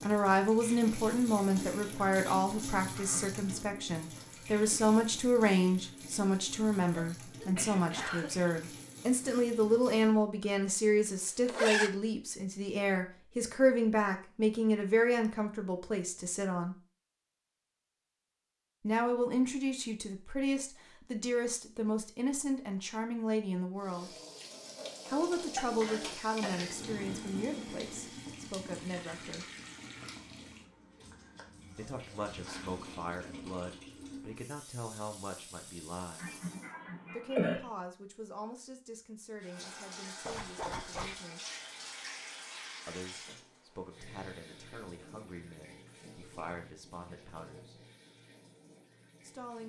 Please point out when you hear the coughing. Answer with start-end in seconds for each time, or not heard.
6.9-8.4, 25.6-26.9, 36.1-37.7.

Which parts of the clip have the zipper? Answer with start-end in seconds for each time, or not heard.
11.4-11.9, 40.2-41.1.